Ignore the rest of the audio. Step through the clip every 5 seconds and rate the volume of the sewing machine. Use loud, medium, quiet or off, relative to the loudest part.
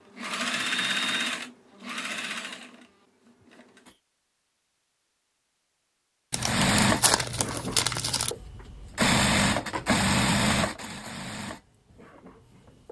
medium, loud, loud.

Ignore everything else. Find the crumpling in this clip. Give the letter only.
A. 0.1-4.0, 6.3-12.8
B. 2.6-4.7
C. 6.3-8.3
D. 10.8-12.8
C.